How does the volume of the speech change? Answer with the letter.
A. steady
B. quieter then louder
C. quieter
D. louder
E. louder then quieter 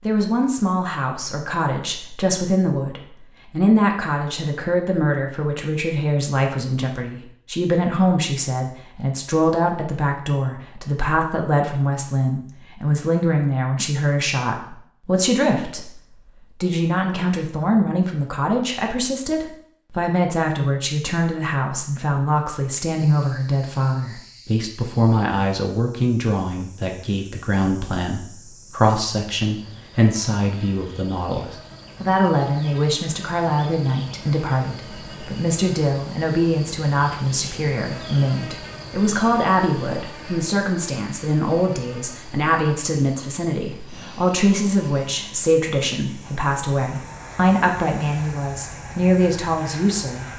A.